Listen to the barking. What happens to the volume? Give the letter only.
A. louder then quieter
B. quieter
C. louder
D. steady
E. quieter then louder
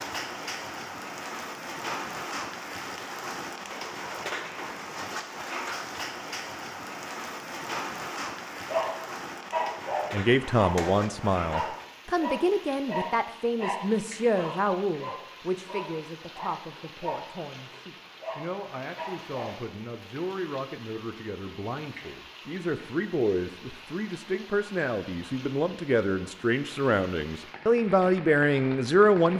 B.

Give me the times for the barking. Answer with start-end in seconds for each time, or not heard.
8.7-19.6.